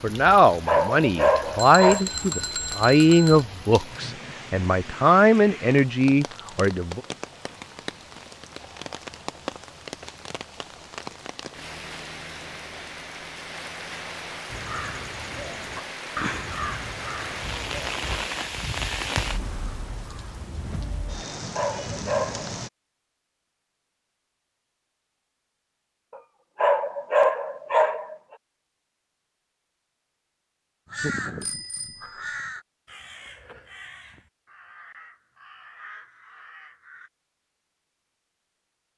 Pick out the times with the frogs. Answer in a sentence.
The frogs can't be heard in this clip.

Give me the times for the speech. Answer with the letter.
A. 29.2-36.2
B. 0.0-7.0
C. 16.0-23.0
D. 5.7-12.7
B.